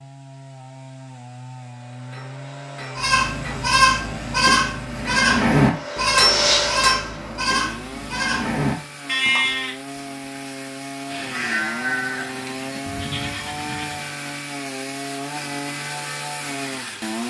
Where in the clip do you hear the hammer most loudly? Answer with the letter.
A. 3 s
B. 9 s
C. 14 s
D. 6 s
D.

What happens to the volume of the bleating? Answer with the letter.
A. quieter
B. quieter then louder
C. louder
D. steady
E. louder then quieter
A.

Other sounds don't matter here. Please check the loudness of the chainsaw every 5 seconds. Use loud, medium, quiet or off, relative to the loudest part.
medium, medium, loud, loud.